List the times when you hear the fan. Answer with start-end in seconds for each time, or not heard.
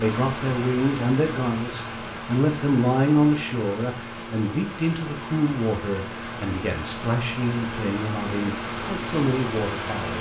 0.0-10.1.